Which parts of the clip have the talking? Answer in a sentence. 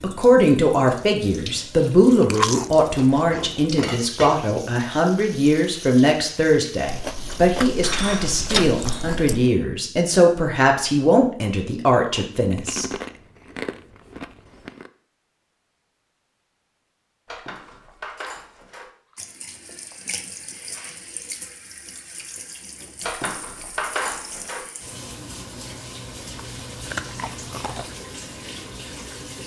You can hear the talking from 0.0 to 12.8 s.